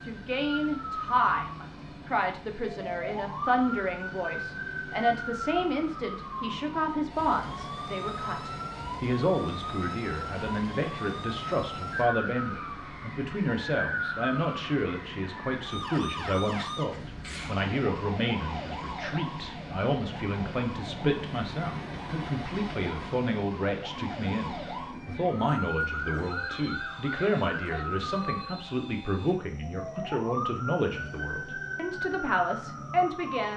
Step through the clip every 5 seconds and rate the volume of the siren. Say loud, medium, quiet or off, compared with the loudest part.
loud, loud, loud, loud, medium, loud, loud.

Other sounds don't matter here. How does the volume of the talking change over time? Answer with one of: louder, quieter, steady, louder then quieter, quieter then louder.
steady.